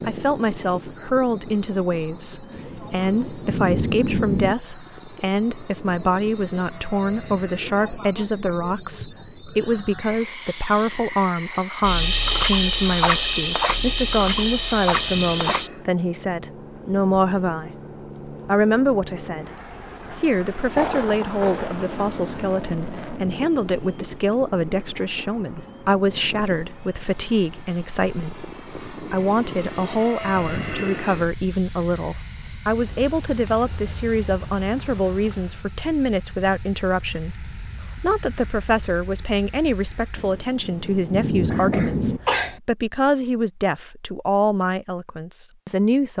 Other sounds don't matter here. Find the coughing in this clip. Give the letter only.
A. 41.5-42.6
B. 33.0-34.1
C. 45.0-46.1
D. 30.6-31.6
A.